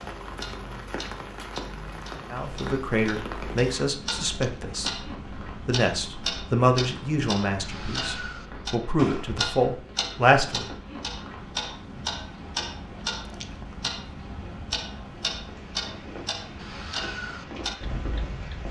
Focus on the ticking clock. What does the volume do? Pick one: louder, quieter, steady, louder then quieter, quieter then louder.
louder.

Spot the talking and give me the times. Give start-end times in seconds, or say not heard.
2.3-10.7.